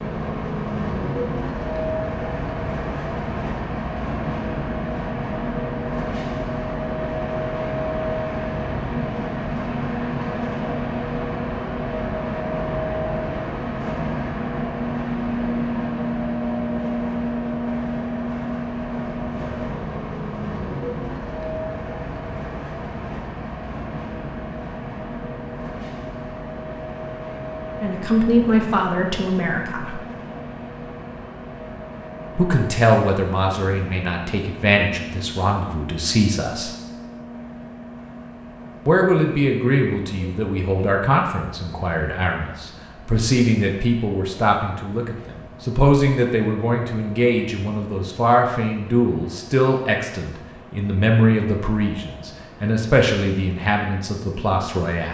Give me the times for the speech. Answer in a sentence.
The speech can be heard from 27.8 to 30.0 s, from 32.4 to 36.7 s and from 38.9 to 55.0 s.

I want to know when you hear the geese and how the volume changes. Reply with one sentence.
You can't hear the geese here.